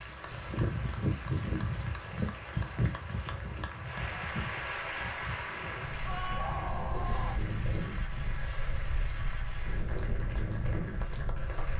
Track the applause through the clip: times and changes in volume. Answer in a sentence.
The applause can be heard from 0.0 to 11.7 s, getting louder then quieter.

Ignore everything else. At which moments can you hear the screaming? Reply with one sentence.
You can hear the screaming from 6.0 to 7.4 s.